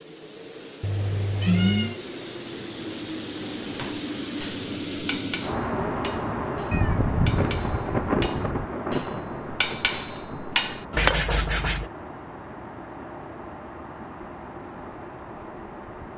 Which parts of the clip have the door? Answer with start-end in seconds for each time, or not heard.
not heard.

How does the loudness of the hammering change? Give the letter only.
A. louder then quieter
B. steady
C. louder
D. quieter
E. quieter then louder
E.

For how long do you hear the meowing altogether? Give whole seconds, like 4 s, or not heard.
4 s.